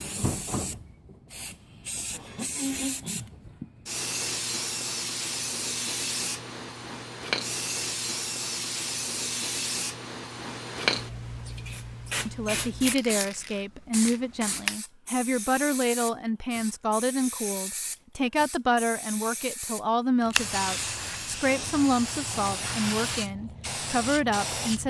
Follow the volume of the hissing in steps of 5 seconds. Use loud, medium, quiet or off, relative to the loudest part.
loud, loud, loud, medium, loud.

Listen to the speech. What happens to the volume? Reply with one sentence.
The volume of the speech stays about the same.